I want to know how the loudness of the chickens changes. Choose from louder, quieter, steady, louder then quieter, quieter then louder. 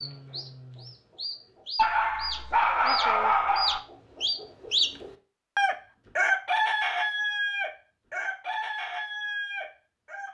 louder then quieter.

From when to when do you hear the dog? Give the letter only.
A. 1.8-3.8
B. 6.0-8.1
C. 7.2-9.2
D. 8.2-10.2
A.